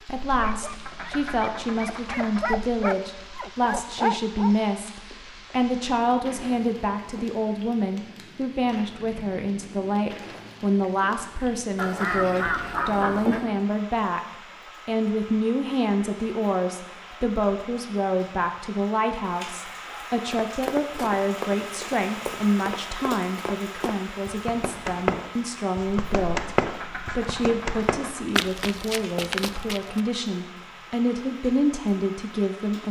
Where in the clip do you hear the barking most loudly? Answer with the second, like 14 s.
4 s.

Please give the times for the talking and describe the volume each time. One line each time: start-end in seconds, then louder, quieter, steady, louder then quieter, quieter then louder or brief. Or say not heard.
0.1-26.5 steady
27.1-32.8 louder.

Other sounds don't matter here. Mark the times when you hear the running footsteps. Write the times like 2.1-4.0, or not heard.
20.3-30.1.